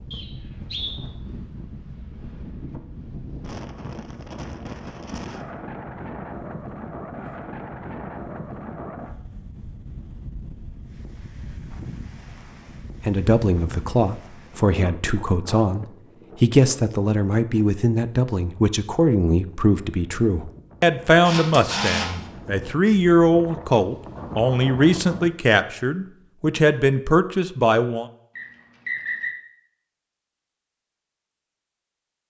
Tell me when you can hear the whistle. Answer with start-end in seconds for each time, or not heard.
0.1-0.9, 28.4-29.4.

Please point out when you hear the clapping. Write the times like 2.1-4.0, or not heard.
not heard.